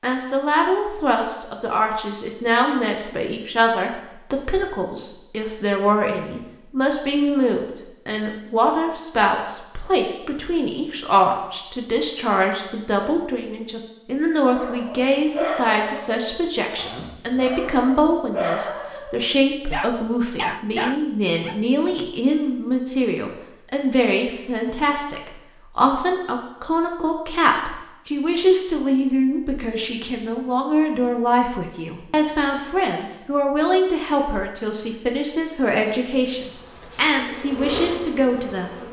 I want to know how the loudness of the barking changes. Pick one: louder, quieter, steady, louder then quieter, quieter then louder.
quieter then louder.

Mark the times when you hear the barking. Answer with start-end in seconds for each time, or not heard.
14.5-22.1.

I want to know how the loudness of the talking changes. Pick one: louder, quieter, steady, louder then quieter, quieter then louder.
steady.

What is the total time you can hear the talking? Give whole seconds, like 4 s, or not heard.
39 s.